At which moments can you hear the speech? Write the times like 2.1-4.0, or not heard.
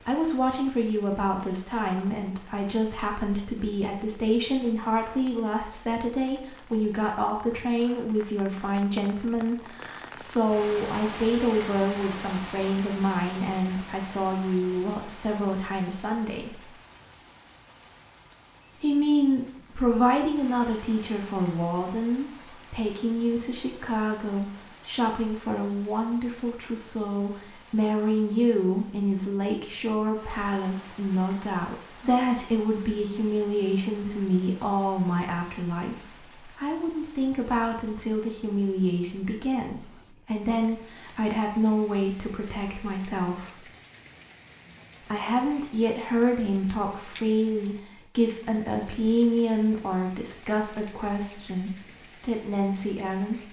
0.0-16.6, 18.8-43.6, 45.0-53.4.